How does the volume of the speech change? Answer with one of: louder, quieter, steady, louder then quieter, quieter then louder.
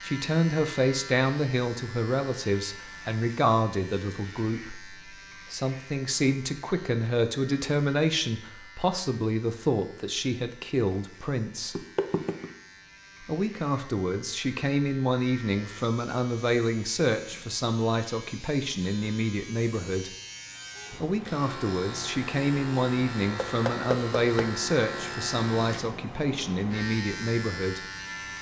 steady.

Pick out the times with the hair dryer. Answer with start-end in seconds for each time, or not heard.
not heard.